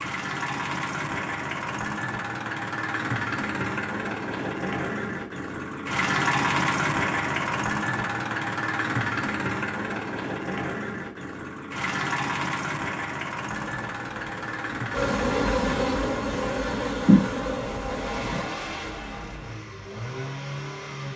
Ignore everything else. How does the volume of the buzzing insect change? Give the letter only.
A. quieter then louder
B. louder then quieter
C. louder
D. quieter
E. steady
B.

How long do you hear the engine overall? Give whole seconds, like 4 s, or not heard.
21 s.